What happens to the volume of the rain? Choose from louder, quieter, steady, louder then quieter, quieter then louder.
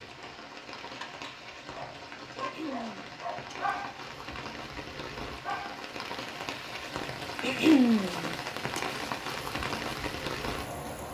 louder.